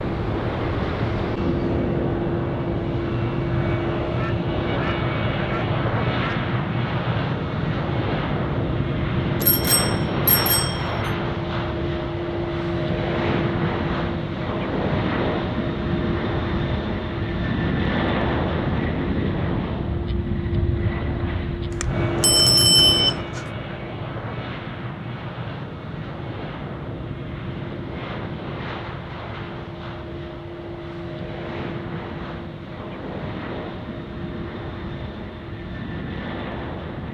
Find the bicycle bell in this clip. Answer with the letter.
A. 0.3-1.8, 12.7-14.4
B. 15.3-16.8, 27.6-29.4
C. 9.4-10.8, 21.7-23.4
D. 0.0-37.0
C.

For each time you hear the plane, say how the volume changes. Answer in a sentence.
The plane can be heard from 0.0 to 37.0 s, getting quieter.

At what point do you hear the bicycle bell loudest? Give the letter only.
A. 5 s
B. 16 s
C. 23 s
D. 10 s
C.